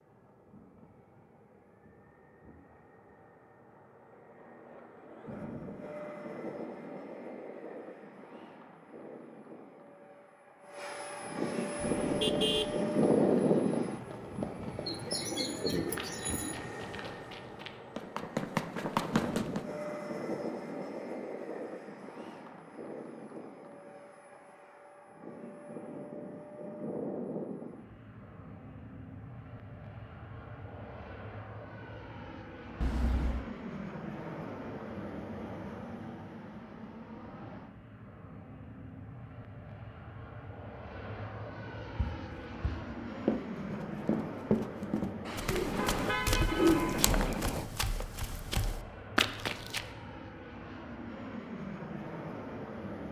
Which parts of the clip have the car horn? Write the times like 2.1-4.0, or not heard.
12.1-12.8, 32.8-33.5, 45.2-47.7.